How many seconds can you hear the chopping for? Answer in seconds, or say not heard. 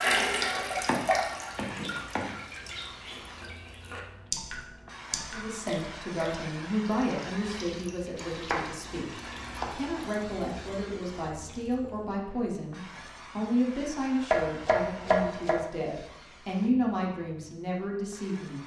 4 s.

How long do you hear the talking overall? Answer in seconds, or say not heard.
13 s.